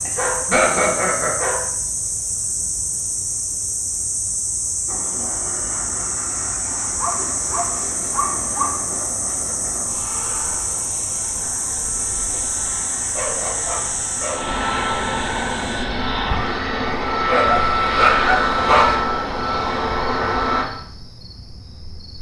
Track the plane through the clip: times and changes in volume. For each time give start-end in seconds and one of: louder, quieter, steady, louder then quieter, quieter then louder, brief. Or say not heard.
4.8-20.6 louder.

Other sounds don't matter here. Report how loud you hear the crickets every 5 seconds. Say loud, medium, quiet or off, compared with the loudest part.
loud, loud, loud, quiet, quiet.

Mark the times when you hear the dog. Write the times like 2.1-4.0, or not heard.
0.1-1.6, 7.0-8.8, 13.2-14.6, 17.2-18.9.